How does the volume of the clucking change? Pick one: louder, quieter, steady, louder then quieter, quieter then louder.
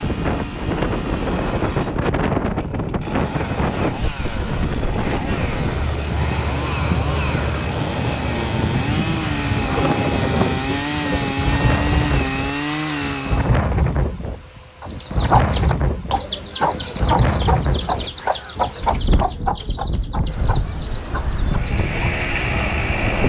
quieter.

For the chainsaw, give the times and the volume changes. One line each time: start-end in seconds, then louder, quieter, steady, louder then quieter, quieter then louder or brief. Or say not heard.
0.0-13.6 louder
21.5-23.2 brief.